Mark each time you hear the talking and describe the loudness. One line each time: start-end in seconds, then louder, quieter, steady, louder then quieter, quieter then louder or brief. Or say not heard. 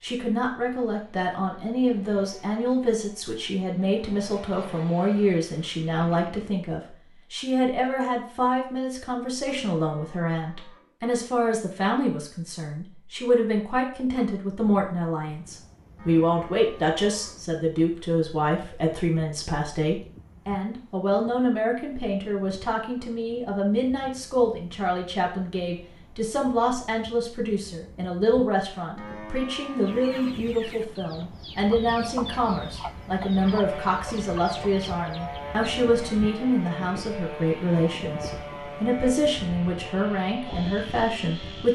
0.0-41.6 steady.